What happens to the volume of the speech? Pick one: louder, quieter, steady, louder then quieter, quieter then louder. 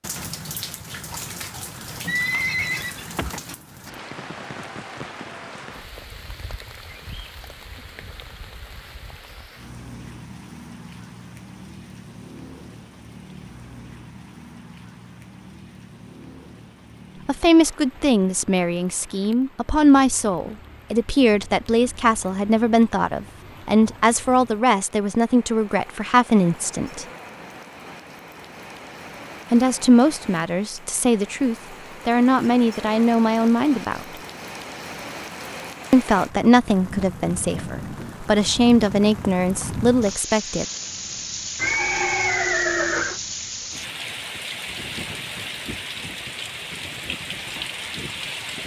steady.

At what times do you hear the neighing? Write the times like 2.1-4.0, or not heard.
2.0-3.4, 41.5-43.2.